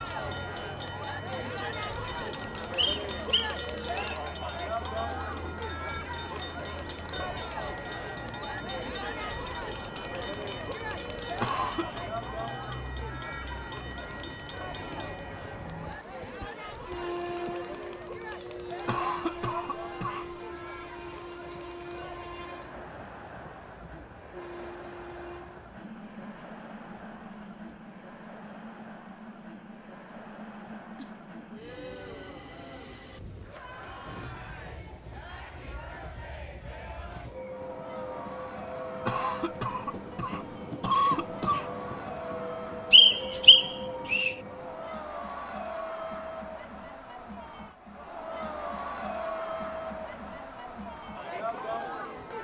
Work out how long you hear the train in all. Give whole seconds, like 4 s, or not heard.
45 s.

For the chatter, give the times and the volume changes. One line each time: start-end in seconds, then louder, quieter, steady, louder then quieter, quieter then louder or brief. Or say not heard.
0.0-52.3 quieter then louder.